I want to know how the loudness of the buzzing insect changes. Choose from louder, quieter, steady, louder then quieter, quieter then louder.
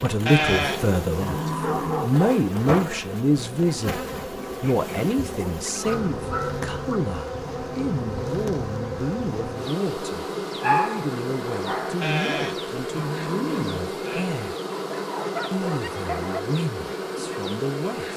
steady.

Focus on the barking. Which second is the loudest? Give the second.
11 s.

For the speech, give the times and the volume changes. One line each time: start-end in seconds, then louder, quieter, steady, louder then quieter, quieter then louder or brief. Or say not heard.
0.0-14.6 quieter
15.5-18.1 brief.